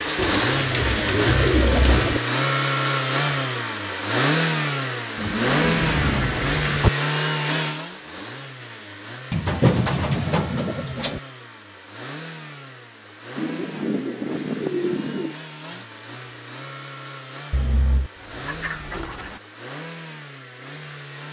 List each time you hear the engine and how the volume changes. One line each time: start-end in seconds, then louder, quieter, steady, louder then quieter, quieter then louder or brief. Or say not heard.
0.0-21.2 quieter.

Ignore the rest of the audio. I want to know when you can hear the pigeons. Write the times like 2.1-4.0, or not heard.
0.1-2.2, 5.2-6.9, 9.3-11.2, 13.3-15.3, 17.5-19.4.